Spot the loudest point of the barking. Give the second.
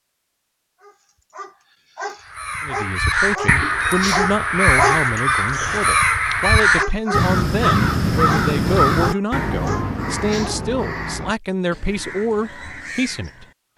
5 s.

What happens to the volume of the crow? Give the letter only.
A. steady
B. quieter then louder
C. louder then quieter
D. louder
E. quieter
E.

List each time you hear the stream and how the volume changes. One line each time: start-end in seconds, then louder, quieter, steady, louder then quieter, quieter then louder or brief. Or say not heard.
not heard.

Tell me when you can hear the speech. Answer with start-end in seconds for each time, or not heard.
2.6-13.4.